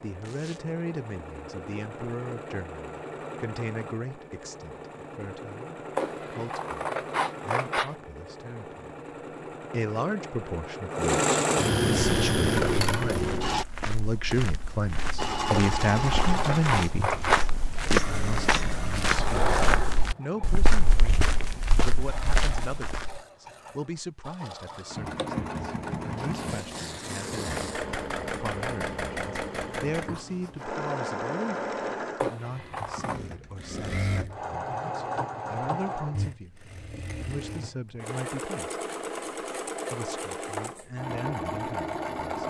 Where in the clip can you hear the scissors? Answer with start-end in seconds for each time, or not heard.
6.0-8.0, 15.5-17.5, 32.2-33.2.